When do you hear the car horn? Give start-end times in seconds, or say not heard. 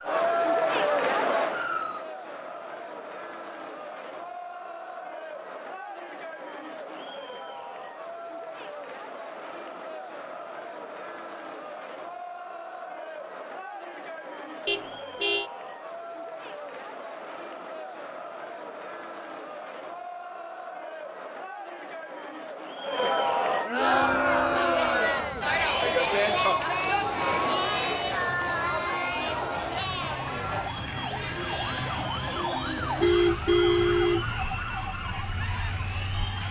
14.7-15.5, 33.0-34.3.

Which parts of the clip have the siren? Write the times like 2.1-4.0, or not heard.
0.0-2.0, 23.8-36.4.